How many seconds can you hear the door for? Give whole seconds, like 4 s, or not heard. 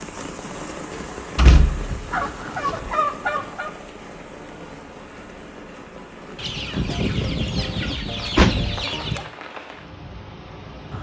3 s.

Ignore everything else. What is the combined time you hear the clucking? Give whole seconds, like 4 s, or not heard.
5 s.